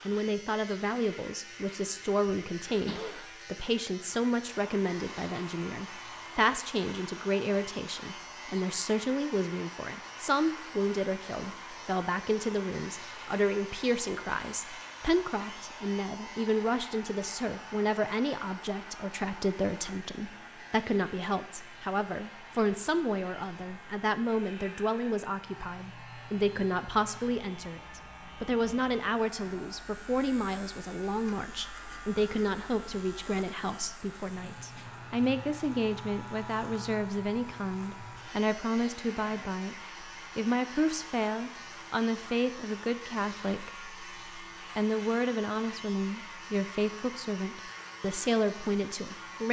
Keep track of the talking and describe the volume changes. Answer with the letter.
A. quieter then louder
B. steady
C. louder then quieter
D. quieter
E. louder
B.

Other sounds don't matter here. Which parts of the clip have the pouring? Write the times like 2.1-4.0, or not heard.
not heard.